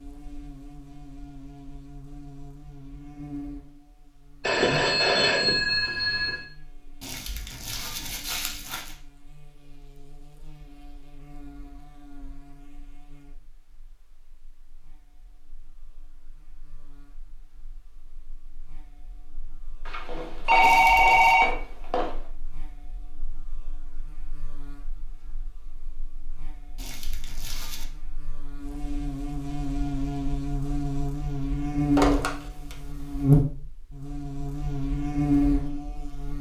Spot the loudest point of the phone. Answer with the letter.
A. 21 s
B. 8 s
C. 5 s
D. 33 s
A.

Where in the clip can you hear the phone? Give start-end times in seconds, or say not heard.
4.4-6.5, 19.9-22.1, 31.9-33.2.